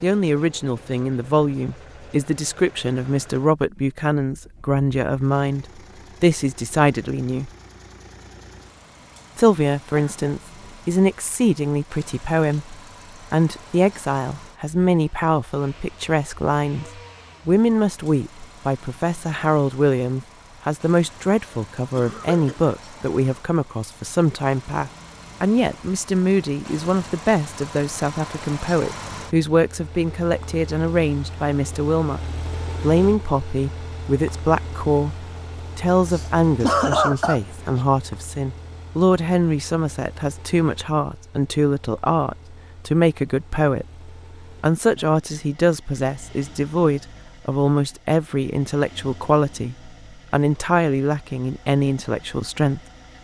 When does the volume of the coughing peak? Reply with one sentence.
The loudest moment of the coughing is at 37 seconds.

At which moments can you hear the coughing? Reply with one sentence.
The coughing can be heard from 9.9 to 10.8 s, from 21.5 to 22.8 s and from 36.0 to 37.8 s.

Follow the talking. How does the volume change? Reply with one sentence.
The loudness of the talking stays about the same.